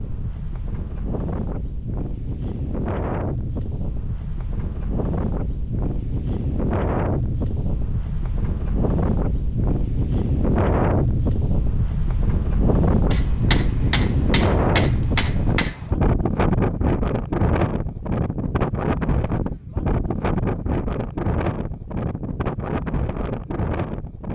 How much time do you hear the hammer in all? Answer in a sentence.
The hammer can be heard for 3 seconds in total.